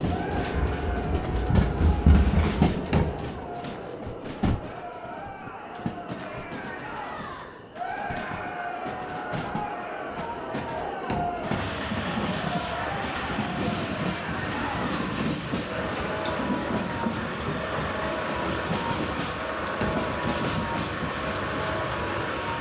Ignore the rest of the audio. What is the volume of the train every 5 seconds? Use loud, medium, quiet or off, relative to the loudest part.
loud, medium, loud, loud, loud.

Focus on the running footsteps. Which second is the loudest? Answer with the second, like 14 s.
2 s.